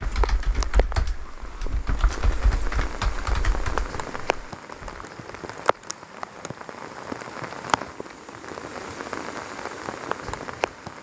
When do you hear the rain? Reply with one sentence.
You can hear the rain from 0.0 to 10.9 s.